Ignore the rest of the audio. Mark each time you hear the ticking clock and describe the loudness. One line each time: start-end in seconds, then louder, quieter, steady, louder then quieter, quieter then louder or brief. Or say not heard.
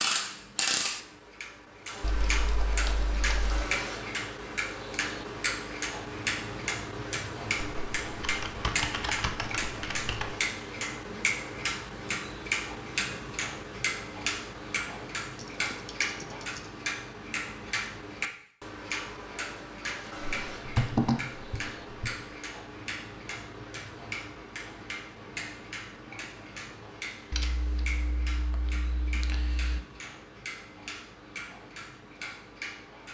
0.0-33.1 quieter.